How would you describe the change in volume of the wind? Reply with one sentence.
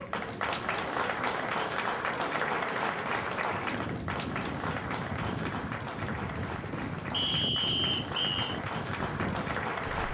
The volume of the wind goes up.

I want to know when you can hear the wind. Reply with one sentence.
You can hear the wind from 0.0 to 10.1 s.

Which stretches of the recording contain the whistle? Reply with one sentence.
The whistle can be heard from 7.1 to 8.6 s.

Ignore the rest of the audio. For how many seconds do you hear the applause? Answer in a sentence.
You can hear the applause for 10 seconds altogether.